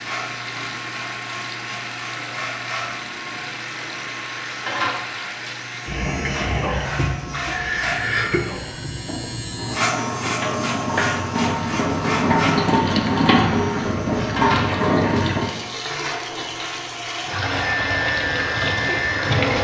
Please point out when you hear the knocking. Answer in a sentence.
You can't hear the knocking here.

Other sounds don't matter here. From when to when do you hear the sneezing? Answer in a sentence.
You can hear the sneezing from 7.3 to 8.4 s.